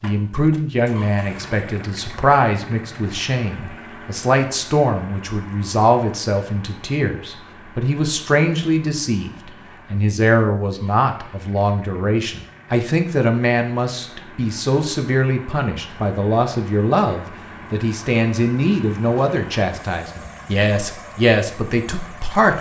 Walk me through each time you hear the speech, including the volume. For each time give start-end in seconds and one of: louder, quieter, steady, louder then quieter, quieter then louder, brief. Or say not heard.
0.0-22.5 steady.